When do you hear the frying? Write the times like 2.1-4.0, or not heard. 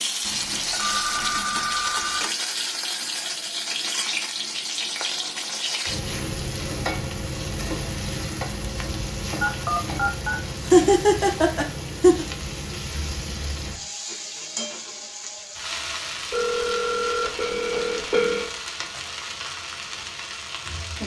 0.0-21.0.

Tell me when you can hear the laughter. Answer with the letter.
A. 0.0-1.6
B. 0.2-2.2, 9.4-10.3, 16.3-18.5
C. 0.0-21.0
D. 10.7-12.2
D.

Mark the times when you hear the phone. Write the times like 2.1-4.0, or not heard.
0.2-2.2, 9.4-10.3, 16.3-18.5.